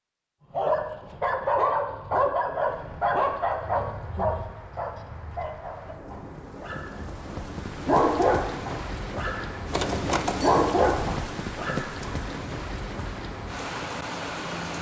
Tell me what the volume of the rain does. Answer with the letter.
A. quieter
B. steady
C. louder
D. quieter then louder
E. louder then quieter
C.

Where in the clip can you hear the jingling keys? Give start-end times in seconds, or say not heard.
9.7-11.2.